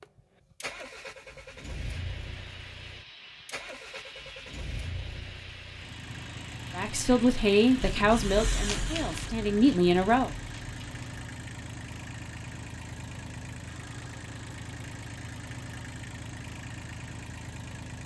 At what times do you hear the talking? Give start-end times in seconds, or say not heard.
6.8-10.3.